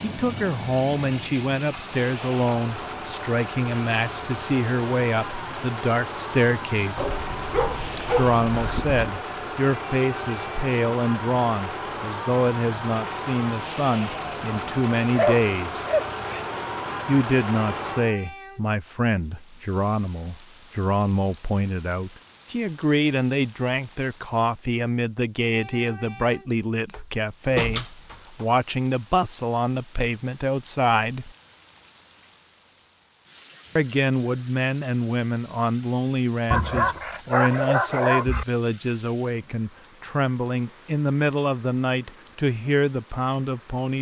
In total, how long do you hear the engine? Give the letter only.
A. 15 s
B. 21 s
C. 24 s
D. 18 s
D.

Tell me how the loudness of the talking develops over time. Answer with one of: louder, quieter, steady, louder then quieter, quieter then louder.
steady.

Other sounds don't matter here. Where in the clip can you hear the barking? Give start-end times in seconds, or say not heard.
7.0-9.1, 15.2-16.4, 36.5-38.5.